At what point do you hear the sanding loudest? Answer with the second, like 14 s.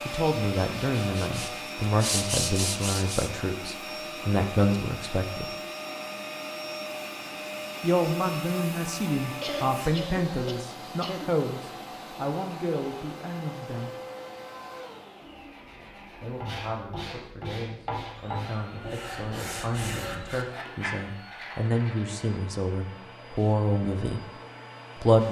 2 s.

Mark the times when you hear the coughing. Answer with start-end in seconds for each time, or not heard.
9.4-11.3.